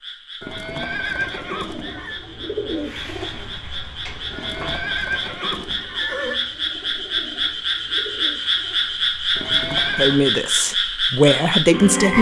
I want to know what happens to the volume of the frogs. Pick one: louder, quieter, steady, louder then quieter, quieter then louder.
louder.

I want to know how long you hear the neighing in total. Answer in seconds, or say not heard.
5 s.